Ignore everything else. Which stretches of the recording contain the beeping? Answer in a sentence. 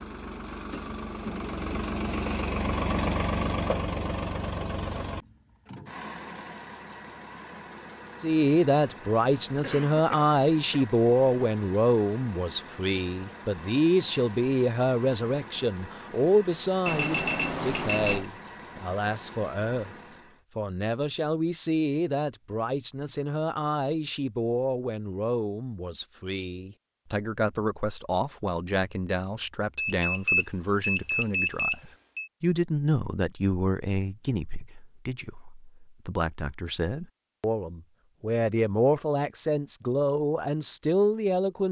The beeping can be heard from 16.9 to 18.2 s and from 29.8 to 32.3 s.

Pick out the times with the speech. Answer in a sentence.
You can hear the speech from 8.2 to 19.9 s and from 20.6 to 41.6 s.